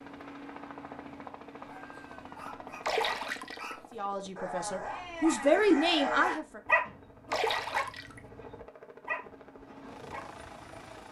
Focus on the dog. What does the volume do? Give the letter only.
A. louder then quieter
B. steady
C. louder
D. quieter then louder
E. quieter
A.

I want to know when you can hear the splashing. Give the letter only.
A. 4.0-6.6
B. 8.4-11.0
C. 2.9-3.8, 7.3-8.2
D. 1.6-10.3
C.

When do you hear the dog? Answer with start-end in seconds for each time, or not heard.
1.6-10.3.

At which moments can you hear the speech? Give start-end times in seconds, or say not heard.
4.0-6.6.